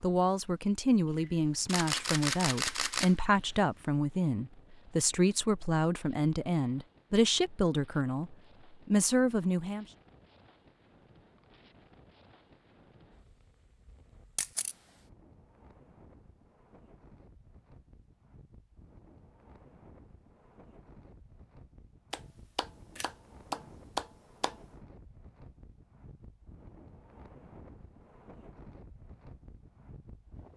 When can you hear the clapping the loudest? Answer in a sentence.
The volume of the clapping peaks at 24 seconds.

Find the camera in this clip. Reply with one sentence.
The camera can be heard from 1.1 to 3.5 s, from 14.3 to 14.8 s and from 22.9 to 23.7 s.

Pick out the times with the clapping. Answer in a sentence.
The clapping can be heard from 22.1 to 24.6 s.